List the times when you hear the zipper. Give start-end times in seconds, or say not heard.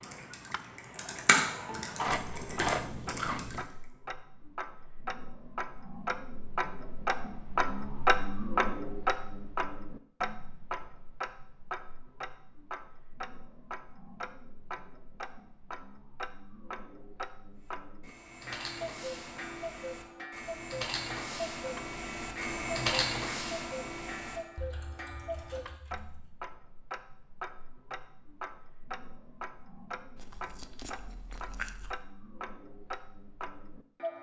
not heard.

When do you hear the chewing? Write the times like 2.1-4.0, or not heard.
1.6-3.6, 30.1-31.9.